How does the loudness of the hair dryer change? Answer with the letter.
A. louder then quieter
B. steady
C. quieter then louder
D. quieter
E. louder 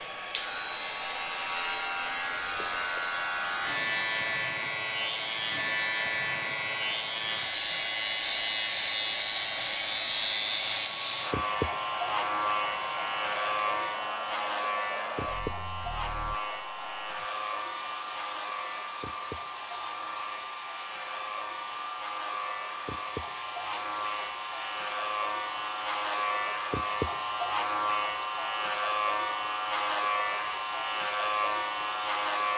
B.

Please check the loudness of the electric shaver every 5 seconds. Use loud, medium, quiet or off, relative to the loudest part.
loud, loud, loud, medium, medium, loud, loud.